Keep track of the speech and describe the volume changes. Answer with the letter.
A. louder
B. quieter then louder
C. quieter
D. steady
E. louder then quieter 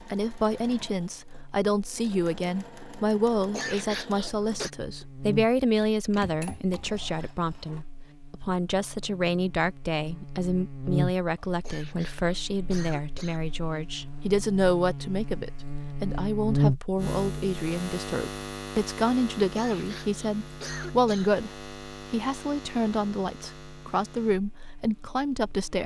D.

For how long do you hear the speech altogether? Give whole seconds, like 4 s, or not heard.
26 s.